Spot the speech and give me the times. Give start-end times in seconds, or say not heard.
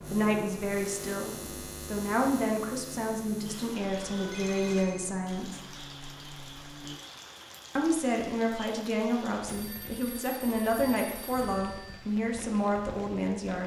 0.1-5.6, 7.8-13.6.